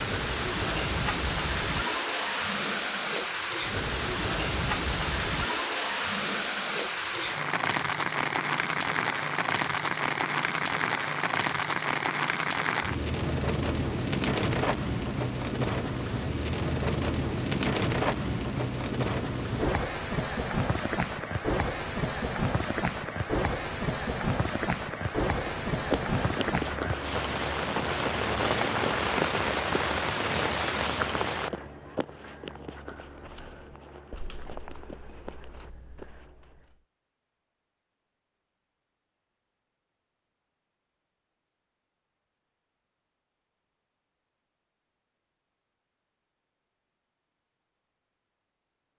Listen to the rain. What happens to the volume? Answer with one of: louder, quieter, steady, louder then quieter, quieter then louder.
steady.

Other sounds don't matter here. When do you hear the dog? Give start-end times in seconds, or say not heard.
not heard.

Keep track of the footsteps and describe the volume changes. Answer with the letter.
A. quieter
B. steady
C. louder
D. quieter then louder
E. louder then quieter
A.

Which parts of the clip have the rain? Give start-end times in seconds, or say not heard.
0.0-31.5.